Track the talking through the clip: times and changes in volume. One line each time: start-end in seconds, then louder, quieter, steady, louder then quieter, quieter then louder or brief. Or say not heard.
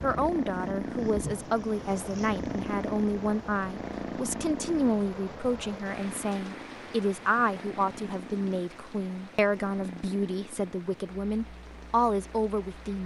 0.0-13.0 steady.